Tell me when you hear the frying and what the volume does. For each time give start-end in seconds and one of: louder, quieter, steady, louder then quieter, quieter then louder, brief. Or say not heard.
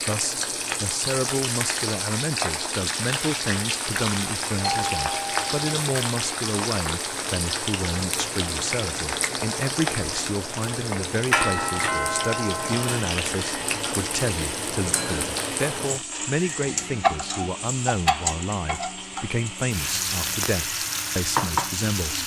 0.0-22.2 steady.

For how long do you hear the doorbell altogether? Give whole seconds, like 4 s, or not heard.
3 s.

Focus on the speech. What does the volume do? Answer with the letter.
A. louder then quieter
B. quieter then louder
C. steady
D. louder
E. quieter
C.